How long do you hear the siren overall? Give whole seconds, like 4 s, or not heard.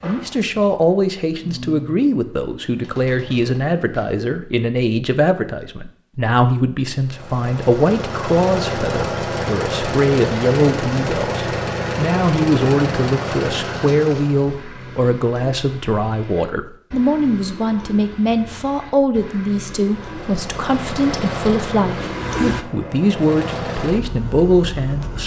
not heard.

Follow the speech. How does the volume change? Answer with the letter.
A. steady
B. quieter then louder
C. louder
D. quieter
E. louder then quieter
A.